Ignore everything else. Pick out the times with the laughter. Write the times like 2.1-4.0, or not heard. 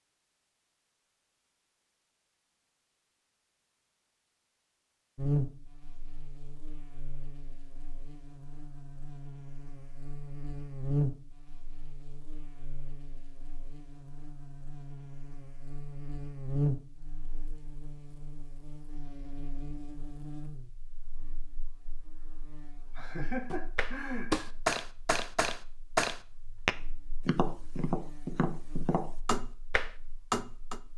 22.9-24.5.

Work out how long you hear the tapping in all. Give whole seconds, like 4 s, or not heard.
7 s.